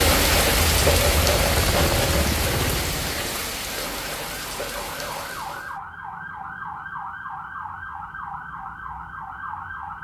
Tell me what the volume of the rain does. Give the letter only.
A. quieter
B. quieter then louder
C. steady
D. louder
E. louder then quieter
A.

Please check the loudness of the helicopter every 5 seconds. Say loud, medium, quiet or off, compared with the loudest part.
loud, off.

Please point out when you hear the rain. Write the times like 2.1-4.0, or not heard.
0.0-5.8.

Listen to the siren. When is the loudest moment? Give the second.
7 s.